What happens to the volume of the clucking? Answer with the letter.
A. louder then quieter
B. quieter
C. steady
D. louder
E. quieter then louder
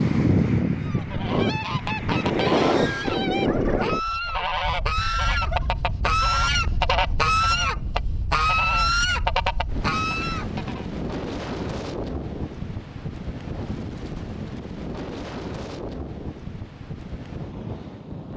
D.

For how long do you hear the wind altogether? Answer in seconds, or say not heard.
18 s.